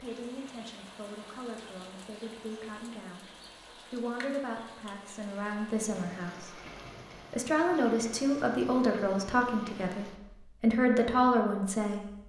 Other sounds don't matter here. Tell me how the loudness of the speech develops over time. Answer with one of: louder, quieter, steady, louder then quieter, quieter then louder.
louder.